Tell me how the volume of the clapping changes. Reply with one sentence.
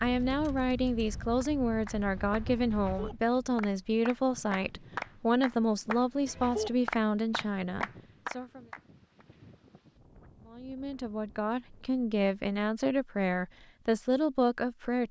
The loudness of the clapping goes up.